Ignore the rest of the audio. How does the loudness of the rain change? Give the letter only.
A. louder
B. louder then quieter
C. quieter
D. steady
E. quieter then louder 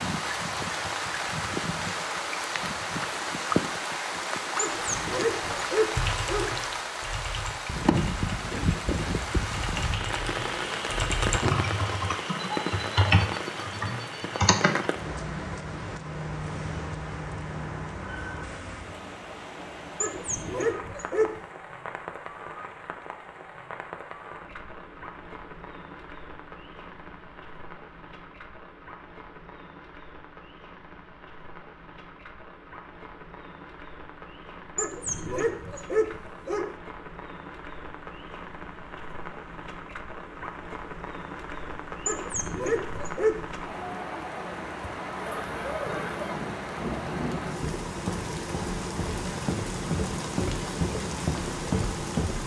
E.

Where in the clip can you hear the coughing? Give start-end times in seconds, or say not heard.
45.1-46.5.